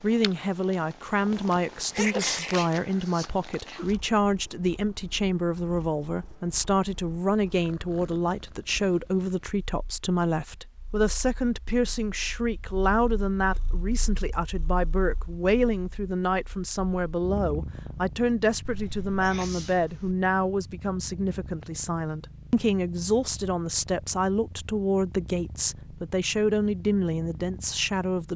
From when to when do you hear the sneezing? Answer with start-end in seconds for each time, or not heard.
1.3-2.7, 18.6-20.1.